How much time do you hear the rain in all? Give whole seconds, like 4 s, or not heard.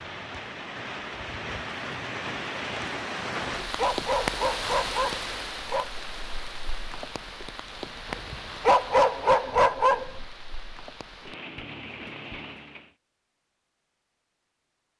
13 s.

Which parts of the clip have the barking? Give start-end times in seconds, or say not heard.
3.5-5.9, 8.1-10.2.